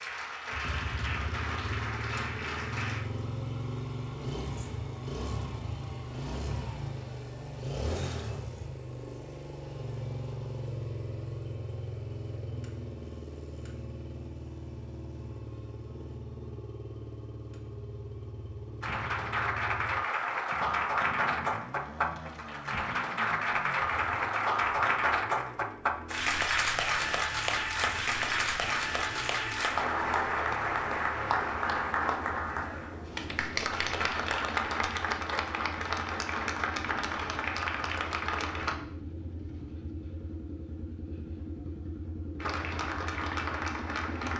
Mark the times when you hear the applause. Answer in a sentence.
You can hear the applause from 0.0 to 3.0 s, from 18.8 to 38.8 s and from 42.4 to 44.3 s.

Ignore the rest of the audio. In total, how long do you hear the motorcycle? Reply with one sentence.
The motorcycle can be heard for 44 seconds in total.